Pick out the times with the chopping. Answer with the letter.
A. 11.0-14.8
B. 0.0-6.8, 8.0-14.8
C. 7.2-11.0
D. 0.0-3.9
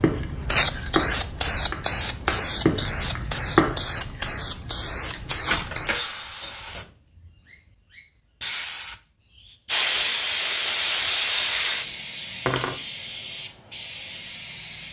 D.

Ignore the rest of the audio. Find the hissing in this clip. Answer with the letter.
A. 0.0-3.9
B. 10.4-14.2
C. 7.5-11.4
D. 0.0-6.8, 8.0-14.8
D.